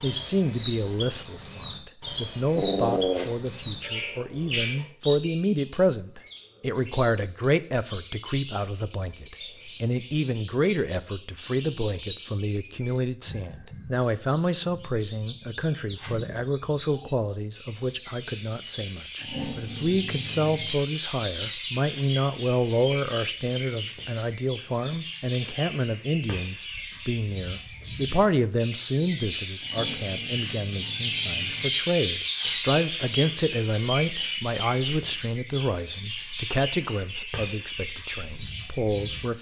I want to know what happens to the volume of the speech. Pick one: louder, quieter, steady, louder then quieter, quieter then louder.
steady.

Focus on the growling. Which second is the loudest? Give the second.
3 s.